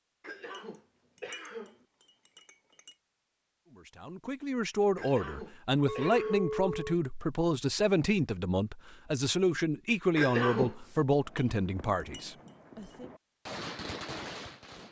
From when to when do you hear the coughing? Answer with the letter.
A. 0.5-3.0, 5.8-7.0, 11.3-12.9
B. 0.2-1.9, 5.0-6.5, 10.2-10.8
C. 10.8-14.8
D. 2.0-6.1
B.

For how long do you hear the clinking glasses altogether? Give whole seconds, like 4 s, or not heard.
5 s.